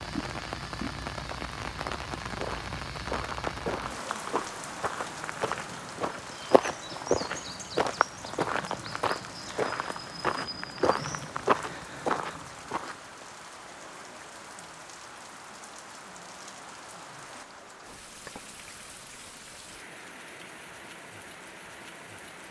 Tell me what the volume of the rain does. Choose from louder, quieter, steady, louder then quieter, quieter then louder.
quieter.